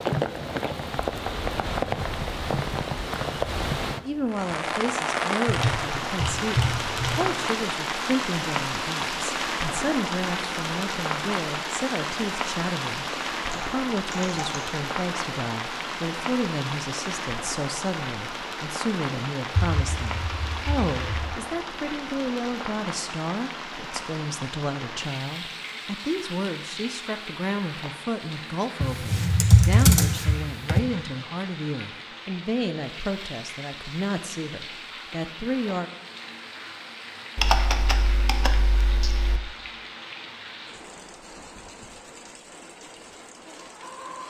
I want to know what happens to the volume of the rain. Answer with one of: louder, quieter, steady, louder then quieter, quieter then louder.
quieter.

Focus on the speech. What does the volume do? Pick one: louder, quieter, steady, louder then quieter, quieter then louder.
steady.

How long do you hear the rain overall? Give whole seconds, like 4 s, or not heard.
44 s.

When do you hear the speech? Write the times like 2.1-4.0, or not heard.
4.0-35.9.